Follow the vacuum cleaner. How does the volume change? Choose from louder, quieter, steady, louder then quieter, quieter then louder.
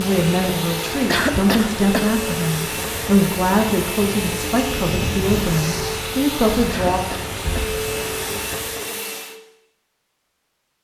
steady.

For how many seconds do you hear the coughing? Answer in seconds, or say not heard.
2 s.